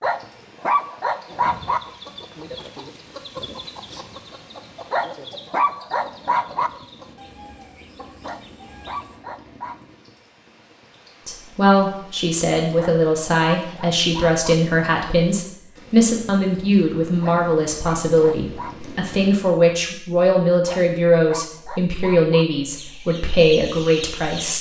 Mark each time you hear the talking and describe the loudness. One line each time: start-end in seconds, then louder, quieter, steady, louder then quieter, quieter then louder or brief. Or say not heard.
11.2-24.5 steady.